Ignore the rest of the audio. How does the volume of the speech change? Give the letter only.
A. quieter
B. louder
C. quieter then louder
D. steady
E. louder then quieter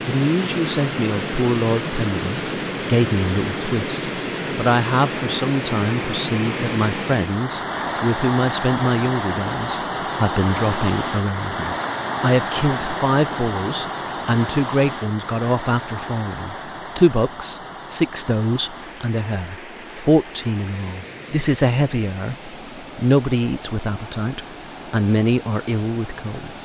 D.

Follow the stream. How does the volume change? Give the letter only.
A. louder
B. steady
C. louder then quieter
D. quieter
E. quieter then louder
D.